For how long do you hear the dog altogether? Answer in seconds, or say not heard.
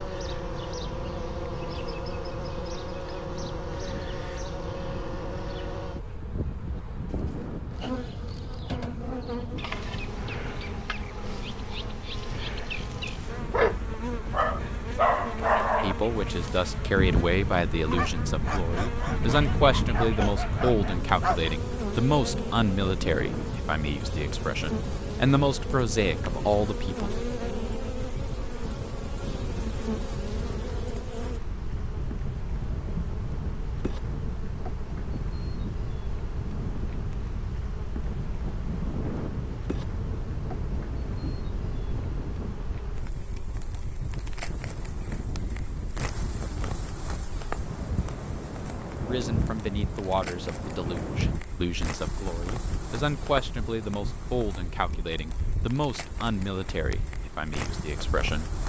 8 s.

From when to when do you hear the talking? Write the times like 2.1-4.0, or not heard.
15.8-27.1, 49.0-58.5.